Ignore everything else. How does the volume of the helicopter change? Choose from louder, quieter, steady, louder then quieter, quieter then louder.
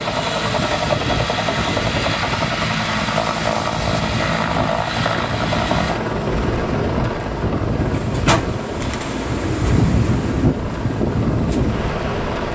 quieter.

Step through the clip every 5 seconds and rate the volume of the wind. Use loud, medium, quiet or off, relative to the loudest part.
medium, loud, loud.